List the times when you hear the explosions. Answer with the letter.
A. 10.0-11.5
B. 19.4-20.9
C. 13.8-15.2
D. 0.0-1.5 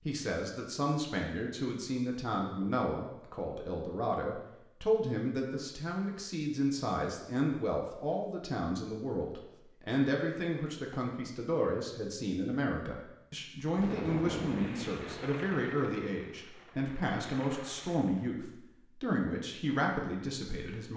C.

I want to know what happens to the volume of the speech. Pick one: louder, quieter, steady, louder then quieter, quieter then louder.
steady.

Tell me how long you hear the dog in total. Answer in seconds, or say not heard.
not heard.